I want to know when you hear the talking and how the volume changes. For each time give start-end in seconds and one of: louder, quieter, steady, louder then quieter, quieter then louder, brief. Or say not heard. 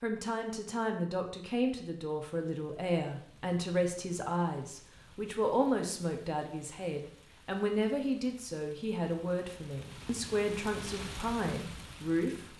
0.0-12.5 steady.